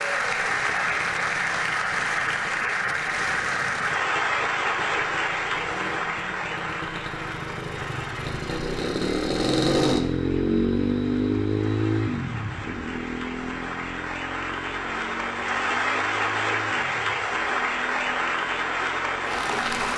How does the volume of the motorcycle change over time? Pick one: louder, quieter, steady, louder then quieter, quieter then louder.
louder then quieter.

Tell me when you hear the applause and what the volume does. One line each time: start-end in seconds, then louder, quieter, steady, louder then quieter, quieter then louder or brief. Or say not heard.
0.0-19.9 quieter then louder.